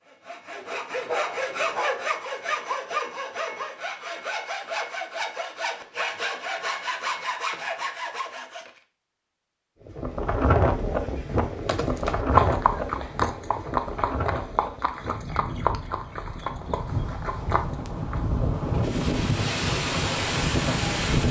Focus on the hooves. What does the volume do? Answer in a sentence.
The loudness of the hooves goes down.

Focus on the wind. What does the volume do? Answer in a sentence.
The volume of the wind goes down, then up.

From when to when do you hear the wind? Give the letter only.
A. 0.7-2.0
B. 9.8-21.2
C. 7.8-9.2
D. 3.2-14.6
B.